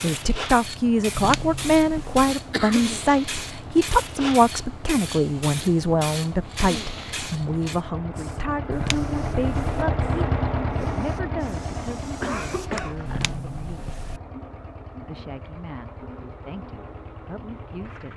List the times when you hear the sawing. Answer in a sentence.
You can't hear the sawing here.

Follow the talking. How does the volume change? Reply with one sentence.
The volume of the talking goes down.